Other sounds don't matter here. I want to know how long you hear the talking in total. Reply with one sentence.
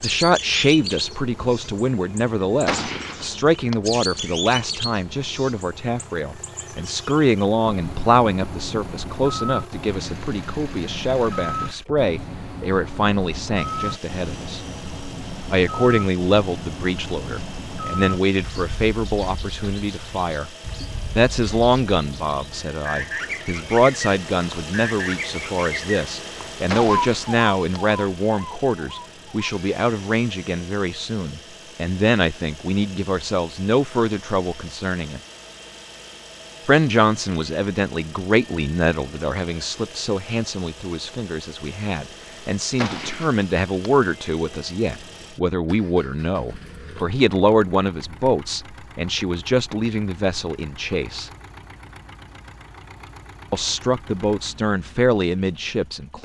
You can hear the talking for 51 seconds altogether.